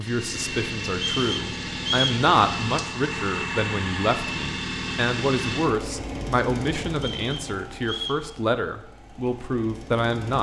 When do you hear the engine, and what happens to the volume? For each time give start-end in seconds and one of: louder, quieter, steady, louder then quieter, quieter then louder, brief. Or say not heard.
0.0-10.3 quieter.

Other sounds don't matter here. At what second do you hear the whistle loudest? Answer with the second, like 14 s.
2 s.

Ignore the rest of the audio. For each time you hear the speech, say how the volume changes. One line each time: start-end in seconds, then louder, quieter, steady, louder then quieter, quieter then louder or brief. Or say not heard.
0.0-10.3 steady.